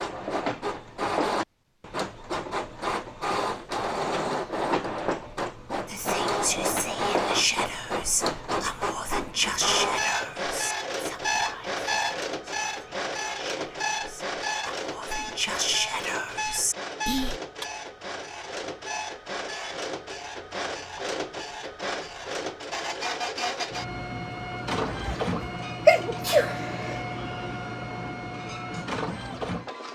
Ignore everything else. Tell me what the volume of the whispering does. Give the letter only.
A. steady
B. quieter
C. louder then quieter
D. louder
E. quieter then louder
E.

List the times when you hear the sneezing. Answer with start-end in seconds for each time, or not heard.
25.1-27.0.